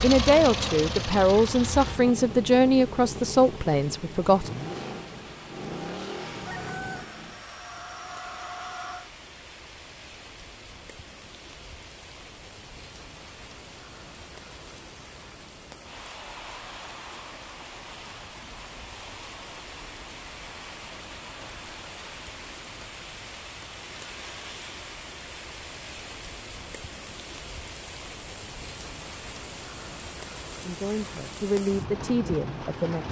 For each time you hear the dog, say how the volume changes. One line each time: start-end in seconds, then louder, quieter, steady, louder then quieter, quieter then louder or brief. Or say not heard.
not heard.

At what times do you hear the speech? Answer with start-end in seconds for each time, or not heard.
0.0-4.5, 30.6-33.0.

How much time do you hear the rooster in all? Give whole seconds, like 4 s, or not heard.
3 s.